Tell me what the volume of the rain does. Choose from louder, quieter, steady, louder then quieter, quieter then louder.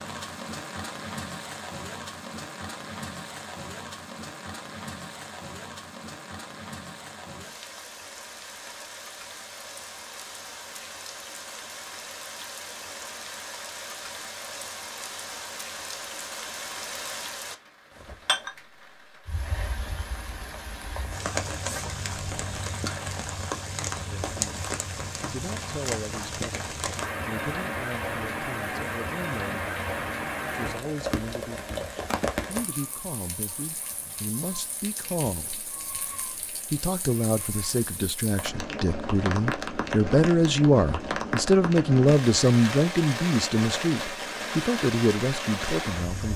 louder.